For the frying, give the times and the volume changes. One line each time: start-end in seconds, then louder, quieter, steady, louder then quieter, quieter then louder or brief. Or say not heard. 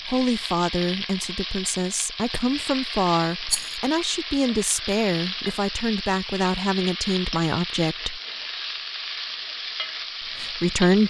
0.0-11.0 steady.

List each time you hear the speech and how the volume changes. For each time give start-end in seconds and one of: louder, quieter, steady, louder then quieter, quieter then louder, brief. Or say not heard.
0.1-8.2 steady
10.3-11.0 brief.